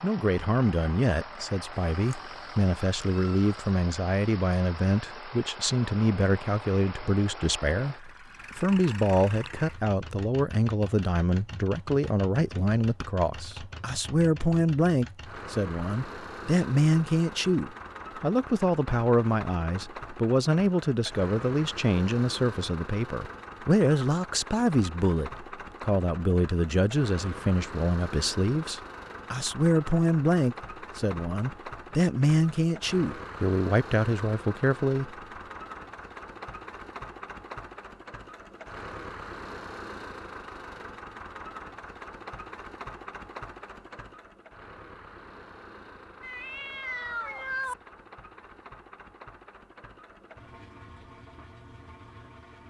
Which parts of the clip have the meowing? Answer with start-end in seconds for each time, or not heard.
1.7-3.5, 46.2-47.8.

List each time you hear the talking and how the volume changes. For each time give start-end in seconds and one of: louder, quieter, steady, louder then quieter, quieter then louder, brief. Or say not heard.
0.0-35.1 steady.